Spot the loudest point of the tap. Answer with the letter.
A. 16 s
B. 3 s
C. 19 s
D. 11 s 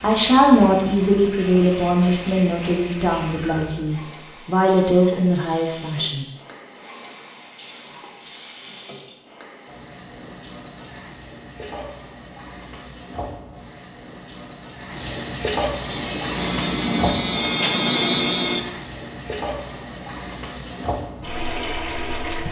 A.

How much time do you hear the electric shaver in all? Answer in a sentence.
The electric shaver can be heard for 3 seconds in total.